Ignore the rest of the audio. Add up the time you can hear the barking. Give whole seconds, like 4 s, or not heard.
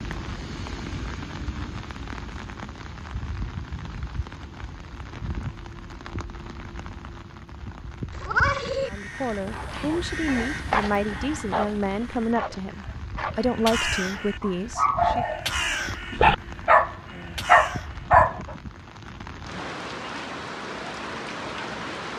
9 s.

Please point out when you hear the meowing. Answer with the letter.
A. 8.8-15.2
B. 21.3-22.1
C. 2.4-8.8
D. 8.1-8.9
D.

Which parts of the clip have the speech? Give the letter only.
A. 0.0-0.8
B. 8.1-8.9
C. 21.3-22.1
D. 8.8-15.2
D.